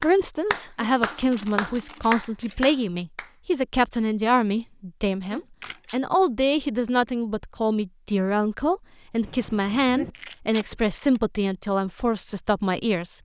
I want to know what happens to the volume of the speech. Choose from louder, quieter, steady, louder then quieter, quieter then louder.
steady.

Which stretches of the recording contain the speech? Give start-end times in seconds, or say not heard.
0.0-13.2.